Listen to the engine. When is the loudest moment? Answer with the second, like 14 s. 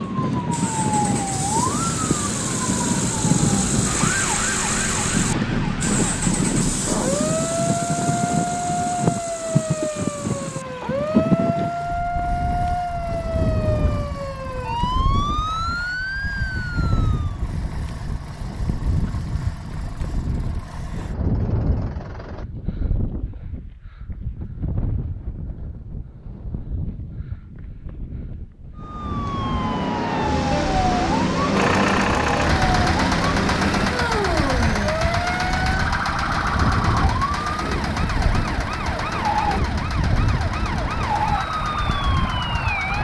32 s.